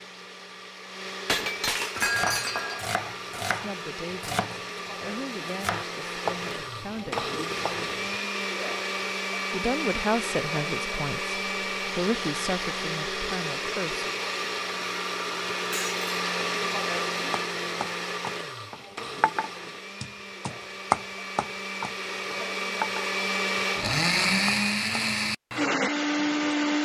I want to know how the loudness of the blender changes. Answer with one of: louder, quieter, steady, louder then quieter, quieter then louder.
louder.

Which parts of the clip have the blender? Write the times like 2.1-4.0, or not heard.
0.0-26.7.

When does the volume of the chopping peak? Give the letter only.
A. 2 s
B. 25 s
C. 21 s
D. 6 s
C.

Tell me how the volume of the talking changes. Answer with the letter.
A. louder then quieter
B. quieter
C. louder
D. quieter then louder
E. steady
A.